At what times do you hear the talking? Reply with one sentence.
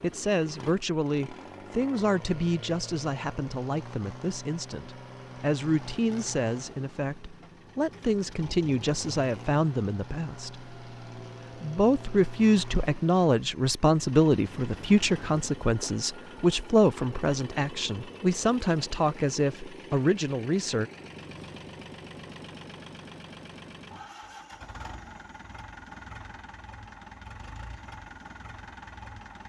You can hear the talking from 0.0 to 10.7 s and from 11.6 to 20.9 s.